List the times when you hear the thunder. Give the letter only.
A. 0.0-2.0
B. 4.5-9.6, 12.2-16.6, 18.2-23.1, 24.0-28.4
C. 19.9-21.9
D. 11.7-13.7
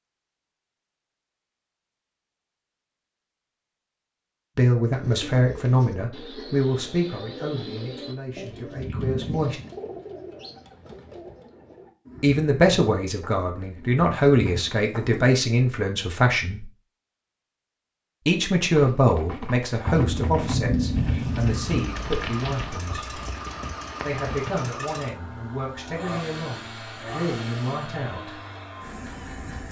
C.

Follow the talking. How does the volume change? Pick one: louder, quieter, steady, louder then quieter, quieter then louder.
quieter.